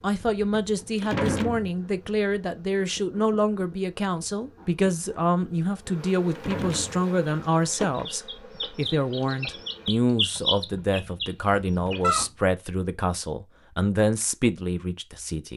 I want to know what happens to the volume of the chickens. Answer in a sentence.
The volume of the chickens goes up, then down.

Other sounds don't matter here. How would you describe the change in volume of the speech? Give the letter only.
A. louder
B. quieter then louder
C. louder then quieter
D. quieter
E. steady
E.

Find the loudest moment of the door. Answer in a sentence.
The loudest moment of the door is at 1 second.